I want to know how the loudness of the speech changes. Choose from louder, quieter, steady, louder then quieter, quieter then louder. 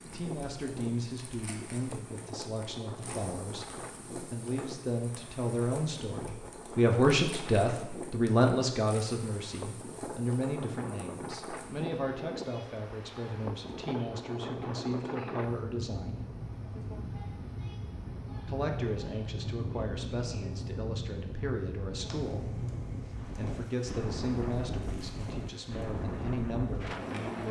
louder then quieter.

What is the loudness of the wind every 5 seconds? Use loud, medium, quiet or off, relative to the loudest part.
medium, medium, loud, loud, loud, loud.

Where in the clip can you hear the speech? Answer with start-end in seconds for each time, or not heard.
0.1-16.2, 18.4-27.4.